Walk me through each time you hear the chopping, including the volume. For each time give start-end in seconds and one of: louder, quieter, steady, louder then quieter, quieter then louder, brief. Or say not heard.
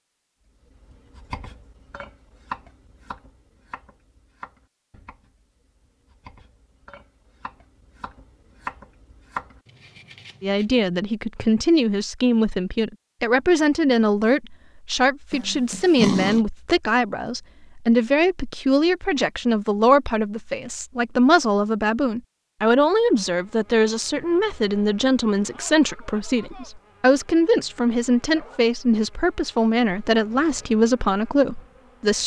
0.7-10.8 quieter then louder.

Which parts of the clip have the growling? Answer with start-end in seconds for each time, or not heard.
15.3-16.4.